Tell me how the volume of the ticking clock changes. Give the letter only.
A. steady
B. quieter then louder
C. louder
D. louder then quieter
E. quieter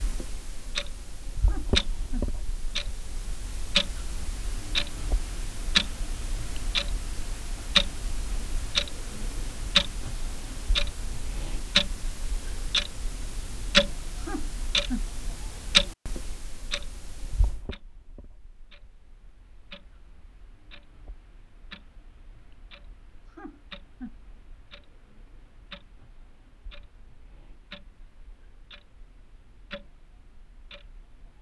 E.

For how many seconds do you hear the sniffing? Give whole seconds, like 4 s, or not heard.
3 s.